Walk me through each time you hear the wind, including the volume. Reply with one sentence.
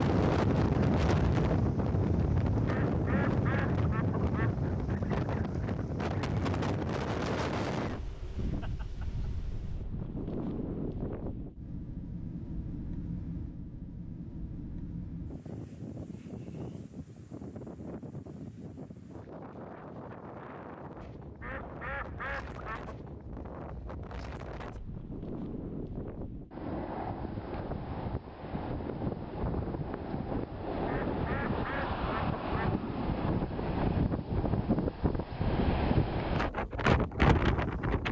The wind can be heard from 0.0 to 38.0 s, getting quieter then louder.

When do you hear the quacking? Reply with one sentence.
The quacking can be heard from 2.6 to 4.5 s, from 21.4 to 22.9 s and from 30.9 to 32.8 s.